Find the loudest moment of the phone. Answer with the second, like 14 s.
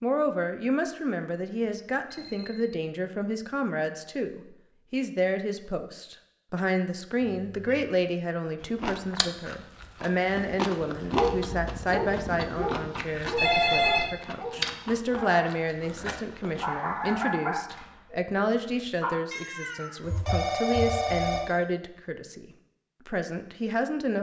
14 s.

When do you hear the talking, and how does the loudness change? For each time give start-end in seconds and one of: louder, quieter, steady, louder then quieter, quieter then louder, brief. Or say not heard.
0.0-22.4 steady
23.1-24.1 brief.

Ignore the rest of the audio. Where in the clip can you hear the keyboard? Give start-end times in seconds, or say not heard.
not heard.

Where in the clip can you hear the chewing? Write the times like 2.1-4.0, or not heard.
8.6-17.9.